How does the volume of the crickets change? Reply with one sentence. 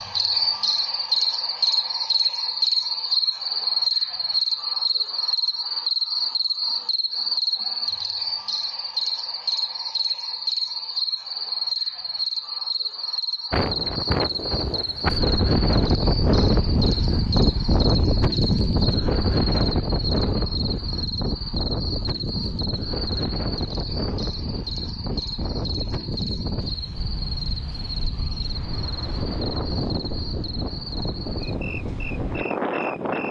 The loudness of the crickets goes down.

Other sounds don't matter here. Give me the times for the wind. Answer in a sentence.
The wind can be heard from 13.5 to 33.2 s.